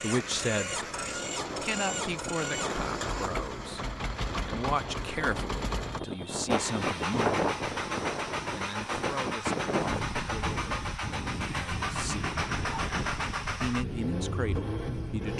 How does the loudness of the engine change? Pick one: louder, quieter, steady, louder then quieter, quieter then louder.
steady.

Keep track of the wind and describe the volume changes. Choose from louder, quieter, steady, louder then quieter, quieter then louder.
louder then quieter.